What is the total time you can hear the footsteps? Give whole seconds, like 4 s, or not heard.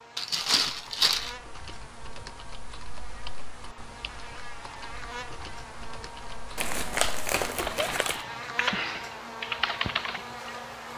not heard.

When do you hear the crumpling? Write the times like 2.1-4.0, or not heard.
0.1-1.4, 6.5-8.2.